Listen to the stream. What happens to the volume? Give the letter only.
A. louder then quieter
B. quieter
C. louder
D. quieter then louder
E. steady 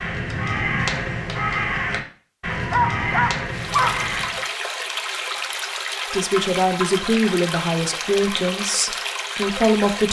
E.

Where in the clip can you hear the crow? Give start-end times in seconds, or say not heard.
0.0-4.5.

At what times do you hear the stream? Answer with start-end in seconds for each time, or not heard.
3.5-10.0.